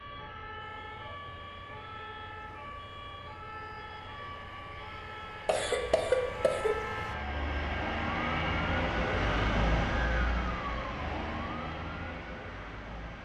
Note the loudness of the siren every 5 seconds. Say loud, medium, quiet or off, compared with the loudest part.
medium, loud, loud.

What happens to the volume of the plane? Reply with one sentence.
The volume of the plane goes up, then down.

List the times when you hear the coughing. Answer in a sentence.
The coughing can be heard from 5.5 to 6.8 s.